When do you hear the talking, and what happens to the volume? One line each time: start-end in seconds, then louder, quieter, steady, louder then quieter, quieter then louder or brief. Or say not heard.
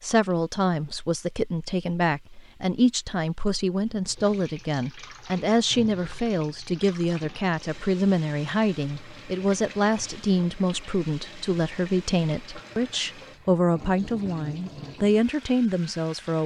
0.0-16.4 steady.